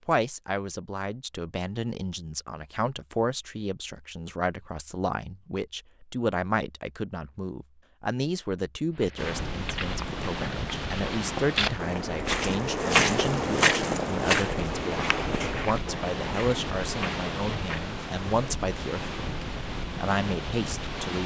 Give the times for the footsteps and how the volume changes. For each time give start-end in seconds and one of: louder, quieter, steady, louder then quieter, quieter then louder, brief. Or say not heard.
8.9-17.9 louder then quieter.